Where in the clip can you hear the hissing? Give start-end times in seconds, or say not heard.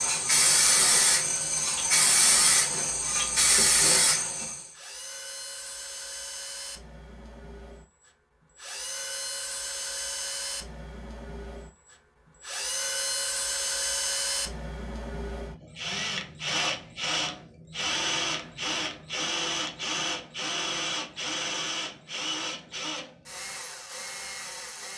0.0-4.7.